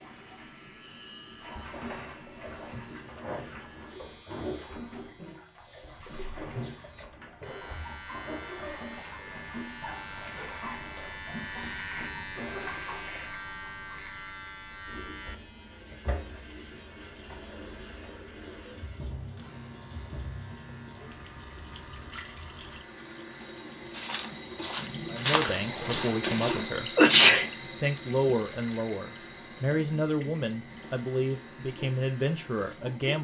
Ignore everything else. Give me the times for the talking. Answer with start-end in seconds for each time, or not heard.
25.1-33.1.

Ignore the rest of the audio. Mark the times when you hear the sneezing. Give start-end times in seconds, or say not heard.
25.8-27.4.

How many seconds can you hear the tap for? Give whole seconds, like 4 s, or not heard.
33 s.